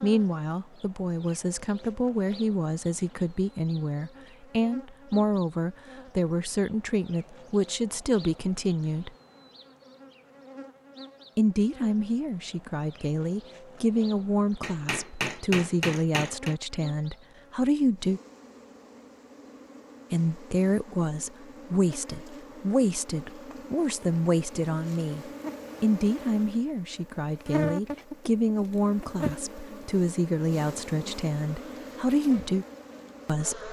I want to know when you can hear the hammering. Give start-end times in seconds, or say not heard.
14.6-16.6.